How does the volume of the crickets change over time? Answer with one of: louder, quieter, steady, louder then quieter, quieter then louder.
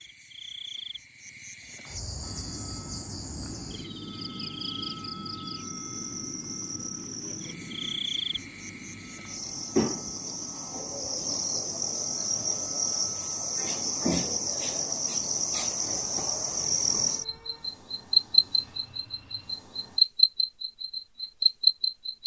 louder.